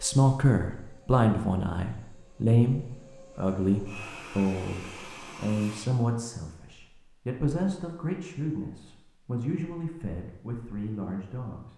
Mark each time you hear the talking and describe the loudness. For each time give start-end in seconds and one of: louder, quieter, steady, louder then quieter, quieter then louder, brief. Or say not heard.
0.0-11.7 quieter.